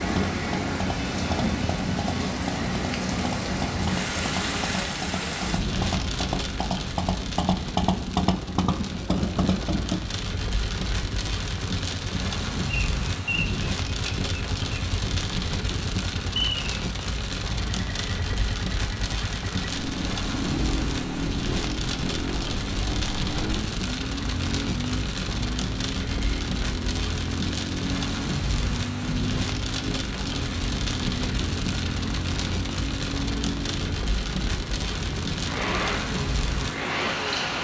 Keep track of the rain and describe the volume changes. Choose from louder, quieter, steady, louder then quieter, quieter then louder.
steady.